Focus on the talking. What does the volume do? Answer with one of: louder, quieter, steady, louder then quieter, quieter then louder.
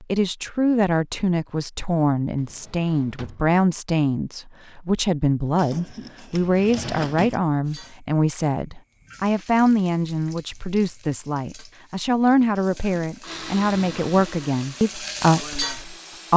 steady.